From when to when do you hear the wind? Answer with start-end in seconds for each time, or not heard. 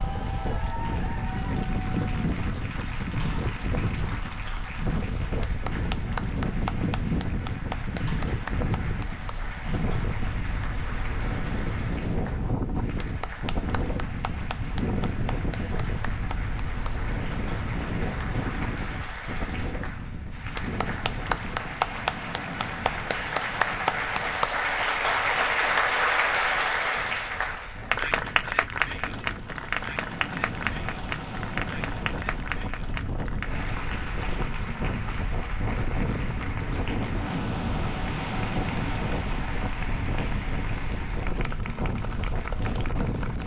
0.0-43.4.